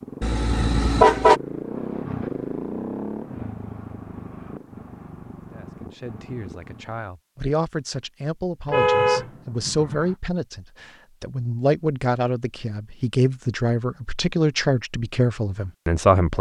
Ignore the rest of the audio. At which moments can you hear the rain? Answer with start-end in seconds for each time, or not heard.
not heard.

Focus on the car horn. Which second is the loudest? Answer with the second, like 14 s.
1 s.